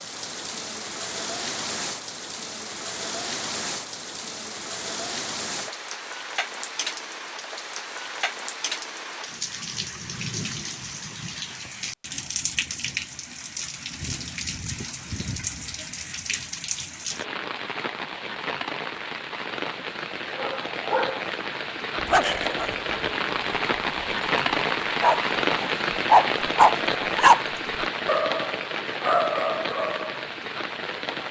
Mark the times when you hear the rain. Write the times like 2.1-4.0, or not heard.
0.0-31.2.